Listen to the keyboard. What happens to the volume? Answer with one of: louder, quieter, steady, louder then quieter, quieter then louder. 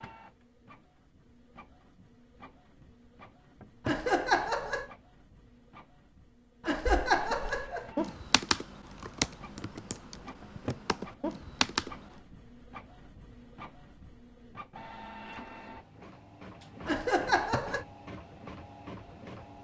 quieter then louder.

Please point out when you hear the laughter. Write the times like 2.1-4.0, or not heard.
3.9-4.8, 6.7-7.9, 16.9-17.9.